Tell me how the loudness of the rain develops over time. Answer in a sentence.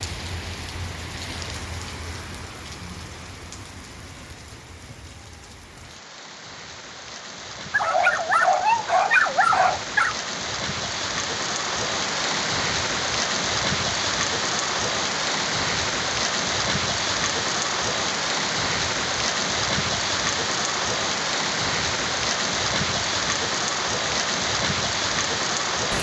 The loudness of the rain goes up.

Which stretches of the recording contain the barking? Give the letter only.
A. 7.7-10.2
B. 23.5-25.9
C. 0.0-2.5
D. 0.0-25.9
A.